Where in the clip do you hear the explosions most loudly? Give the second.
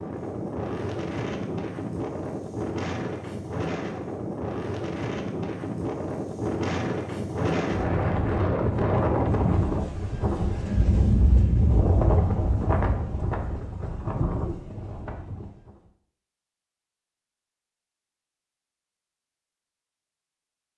11 s.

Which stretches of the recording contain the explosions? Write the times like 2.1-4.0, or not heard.
10.7-13.3.